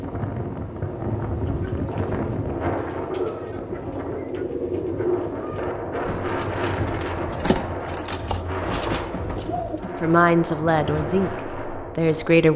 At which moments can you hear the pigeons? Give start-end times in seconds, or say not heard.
1.4-10.0.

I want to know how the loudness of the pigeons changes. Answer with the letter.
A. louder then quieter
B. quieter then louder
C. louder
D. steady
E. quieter
D.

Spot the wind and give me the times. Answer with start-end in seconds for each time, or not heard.
0.0-12.4.